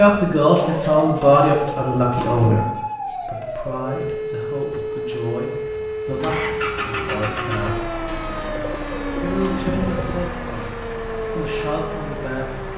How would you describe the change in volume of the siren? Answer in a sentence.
The loudness of the siren stays about the same.